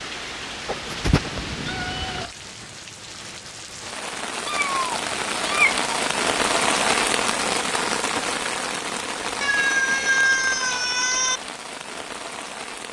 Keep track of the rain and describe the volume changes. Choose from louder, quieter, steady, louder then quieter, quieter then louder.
louder then quieter.